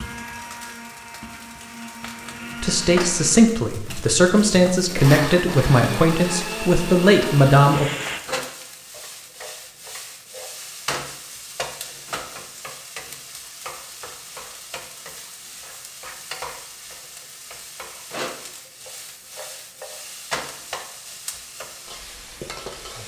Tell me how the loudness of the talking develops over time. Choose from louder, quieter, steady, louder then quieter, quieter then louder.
steady.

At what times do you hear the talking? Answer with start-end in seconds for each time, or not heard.
2.6-7.8.